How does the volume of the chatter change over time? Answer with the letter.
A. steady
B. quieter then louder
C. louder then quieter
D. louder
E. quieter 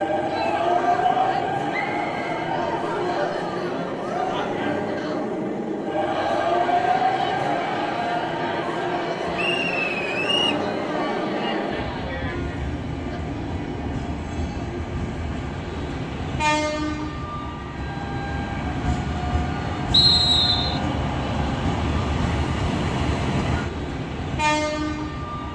A.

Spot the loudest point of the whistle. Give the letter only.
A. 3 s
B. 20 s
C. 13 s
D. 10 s
B.